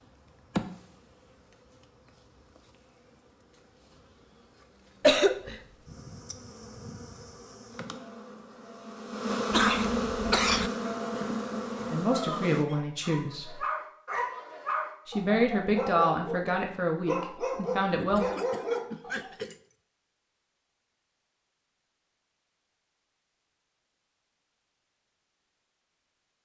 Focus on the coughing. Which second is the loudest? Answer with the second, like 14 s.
5 s.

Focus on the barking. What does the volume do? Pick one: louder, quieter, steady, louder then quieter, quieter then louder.
louder.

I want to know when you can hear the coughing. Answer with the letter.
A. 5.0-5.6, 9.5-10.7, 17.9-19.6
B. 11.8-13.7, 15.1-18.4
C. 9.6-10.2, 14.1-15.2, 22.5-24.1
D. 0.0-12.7
A.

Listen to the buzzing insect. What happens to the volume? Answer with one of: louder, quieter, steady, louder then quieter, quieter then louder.
quieter then louder.